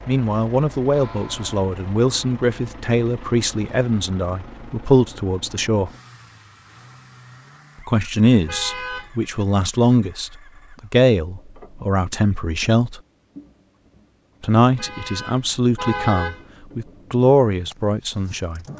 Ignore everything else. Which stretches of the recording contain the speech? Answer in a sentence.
The speech can be heard from 0.1 to 5.9 s, from 7.8 to 13.0 s and from 14.4 to 18.6 s.